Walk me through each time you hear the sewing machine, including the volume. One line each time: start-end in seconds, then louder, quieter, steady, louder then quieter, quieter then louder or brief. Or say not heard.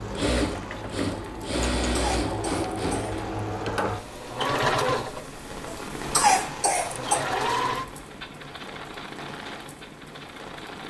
0.0-10.8 quieter.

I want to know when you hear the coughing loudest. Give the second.
6 s.